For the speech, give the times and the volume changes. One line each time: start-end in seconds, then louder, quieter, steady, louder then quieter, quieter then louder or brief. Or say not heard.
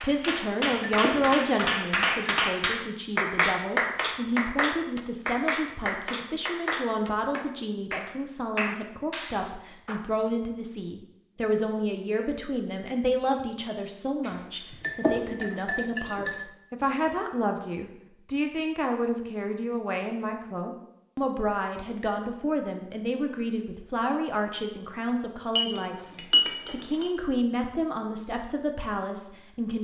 0.0-29.7 steady.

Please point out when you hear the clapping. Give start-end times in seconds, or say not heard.
0.0-10.1.